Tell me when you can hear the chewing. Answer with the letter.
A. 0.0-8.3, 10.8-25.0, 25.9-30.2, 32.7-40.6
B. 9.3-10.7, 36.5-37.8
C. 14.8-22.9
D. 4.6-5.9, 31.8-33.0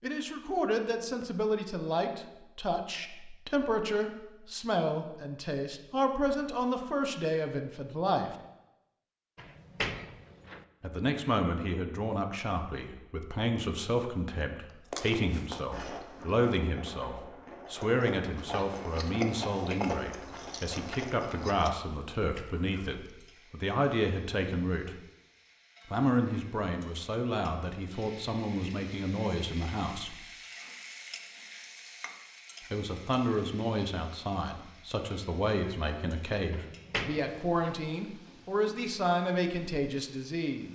C.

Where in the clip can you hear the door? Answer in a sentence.
You can hear the door from 9.3 to 10.7 s and from 36.5 to 37.8 s.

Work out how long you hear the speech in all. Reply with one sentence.
You can hear the speech for 35 seconds altogether.